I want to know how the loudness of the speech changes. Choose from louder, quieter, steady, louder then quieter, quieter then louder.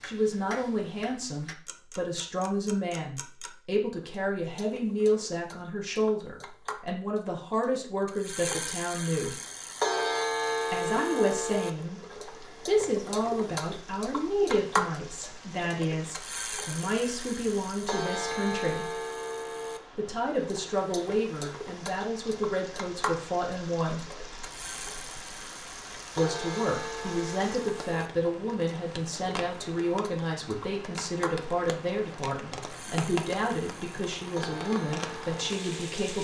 steady.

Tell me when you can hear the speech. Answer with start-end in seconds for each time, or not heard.
0.0-9.4, 10.7-18.9, 19.9-24.0, 26.1-36.1.